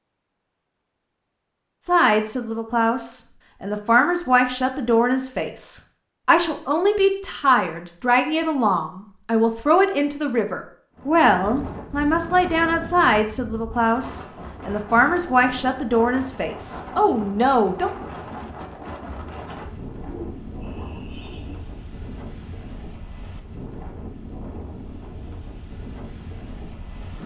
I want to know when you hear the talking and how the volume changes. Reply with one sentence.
The talking can be heard from 1.9 to 17.9 s, at a steady volume.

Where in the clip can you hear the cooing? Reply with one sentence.
You can hear the cooing from 20.1 to 21.6 s.